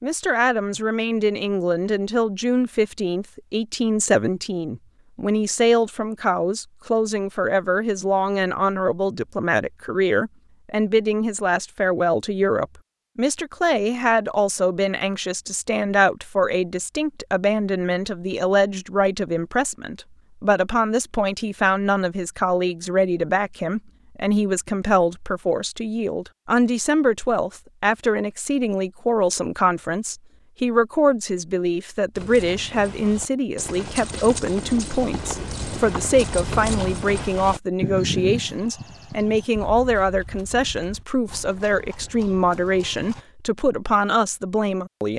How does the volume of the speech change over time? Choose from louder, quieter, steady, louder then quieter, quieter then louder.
steady.